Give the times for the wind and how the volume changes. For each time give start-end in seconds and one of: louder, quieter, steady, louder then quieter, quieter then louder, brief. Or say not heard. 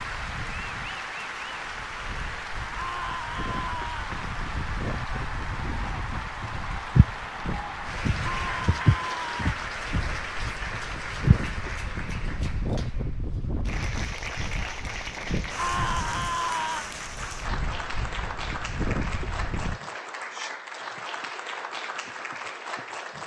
0.0-19.8 louder.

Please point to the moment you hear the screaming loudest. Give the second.
16 s.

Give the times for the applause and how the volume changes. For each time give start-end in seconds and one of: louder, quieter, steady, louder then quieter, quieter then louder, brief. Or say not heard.
0.0-23.2 steady.